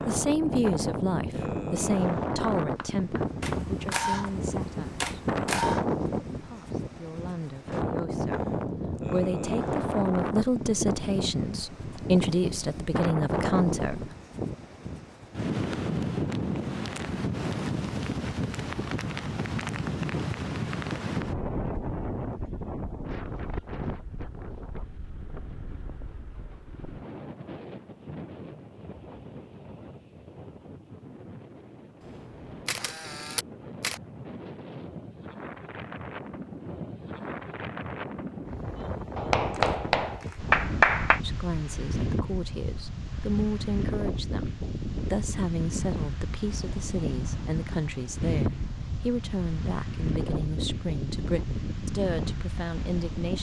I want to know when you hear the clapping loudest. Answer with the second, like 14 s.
41 s.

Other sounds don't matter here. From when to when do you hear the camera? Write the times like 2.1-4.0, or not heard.
3.4-5.8, 32.0-34.0, 39.5-40.5.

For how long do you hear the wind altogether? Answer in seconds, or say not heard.
53 s.